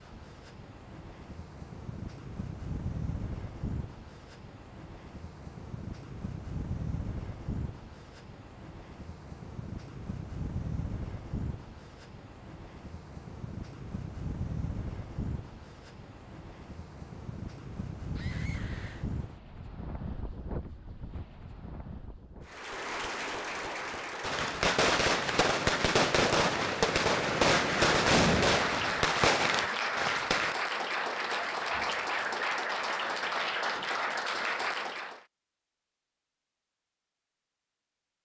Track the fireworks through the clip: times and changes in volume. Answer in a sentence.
You can hear the fireworks from 24.2 to 30.6 s, at a steady volume.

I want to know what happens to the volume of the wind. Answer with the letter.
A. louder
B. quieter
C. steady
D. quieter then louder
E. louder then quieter
C.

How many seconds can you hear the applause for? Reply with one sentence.
You can hear the applause for 13 seconds altogether.